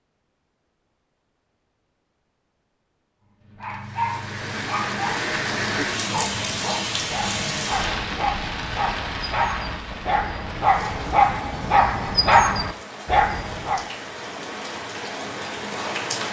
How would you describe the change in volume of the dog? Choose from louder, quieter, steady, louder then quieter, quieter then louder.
louder.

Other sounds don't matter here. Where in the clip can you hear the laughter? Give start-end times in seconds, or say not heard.
not heard.